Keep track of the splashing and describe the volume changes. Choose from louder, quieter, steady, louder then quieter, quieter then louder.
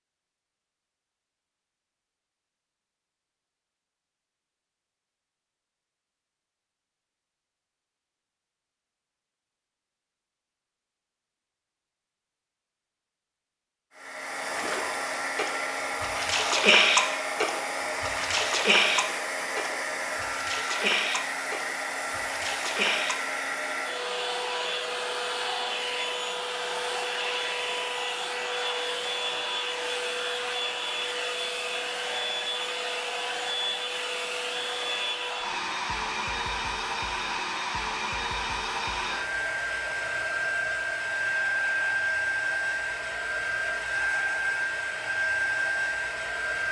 louder then quieter.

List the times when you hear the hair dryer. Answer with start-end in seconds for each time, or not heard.
13.9-46.6.